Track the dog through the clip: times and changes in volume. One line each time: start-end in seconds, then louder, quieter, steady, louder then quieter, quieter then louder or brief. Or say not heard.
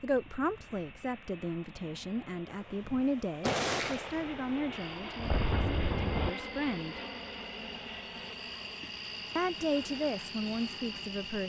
not heard.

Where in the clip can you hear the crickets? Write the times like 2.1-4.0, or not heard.
4.7-11.4.